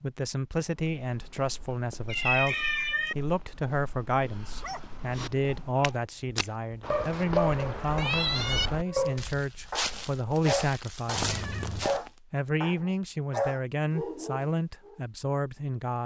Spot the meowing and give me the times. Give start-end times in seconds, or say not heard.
2.0-3.1, 7.1-8.7, 11.2-11.9.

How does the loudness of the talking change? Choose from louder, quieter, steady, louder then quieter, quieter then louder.
steady.